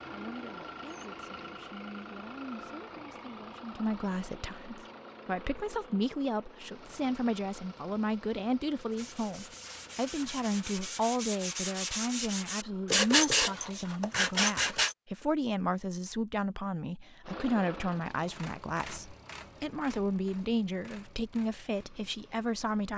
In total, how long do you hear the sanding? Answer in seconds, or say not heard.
6 s.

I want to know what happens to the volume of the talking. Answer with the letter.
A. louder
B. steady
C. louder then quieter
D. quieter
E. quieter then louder
A.